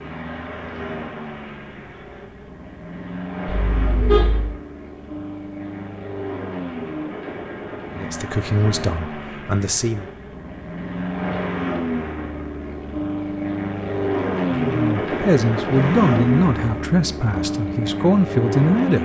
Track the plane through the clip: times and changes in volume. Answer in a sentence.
The plane can be heard from 0.0 to 19.0 s, getting louder.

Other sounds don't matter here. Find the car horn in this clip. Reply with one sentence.
You can hear the car horn from 3.5 to 4.5 s.